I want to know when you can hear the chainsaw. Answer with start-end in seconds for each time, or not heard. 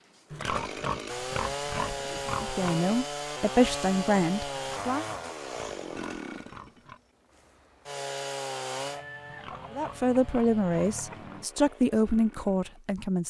0.0-12.9.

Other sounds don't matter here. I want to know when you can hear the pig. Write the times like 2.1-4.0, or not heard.
0.3-2.8, 4.5-7.0, 9.2-11.4.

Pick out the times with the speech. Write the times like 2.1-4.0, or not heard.
2.4-5.0, 9.7-13.2.